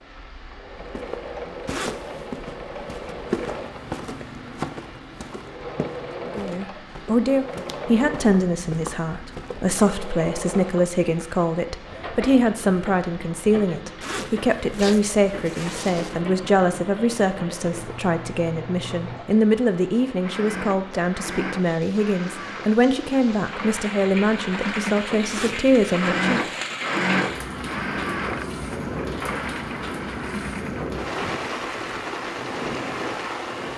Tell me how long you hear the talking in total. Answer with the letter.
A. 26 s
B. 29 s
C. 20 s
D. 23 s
C.